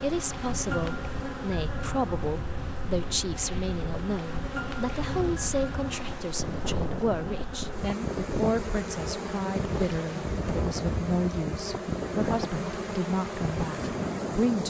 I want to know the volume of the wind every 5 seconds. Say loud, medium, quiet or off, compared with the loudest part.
medium, loud, loud.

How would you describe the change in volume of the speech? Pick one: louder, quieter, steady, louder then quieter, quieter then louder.
steady.